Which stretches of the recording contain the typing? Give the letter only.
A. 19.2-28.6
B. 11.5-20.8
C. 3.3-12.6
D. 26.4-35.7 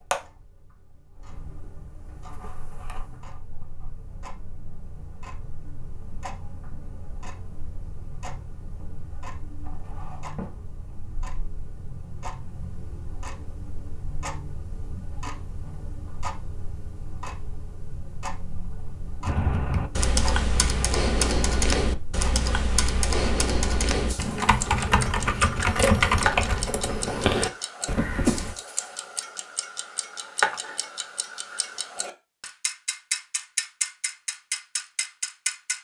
A.